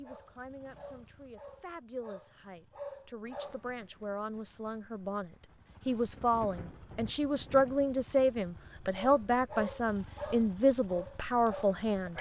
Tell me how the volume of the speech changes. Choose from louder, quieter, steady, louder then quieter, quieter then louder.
louder.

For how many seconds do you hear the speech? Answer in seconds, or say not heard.
12 s.